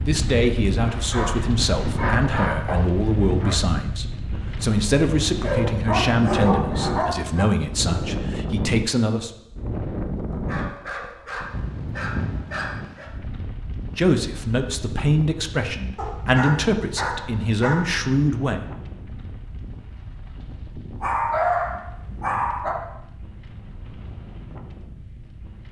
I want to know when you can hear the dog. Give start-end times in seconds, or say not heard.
0.8-3.5, 5.4-7.5, 10.3-13.1, 15.9-18.1, 21.0-22.8.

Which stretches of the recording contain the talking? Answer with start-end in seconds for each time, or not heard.
0.1-9.3, 13.9-18.6.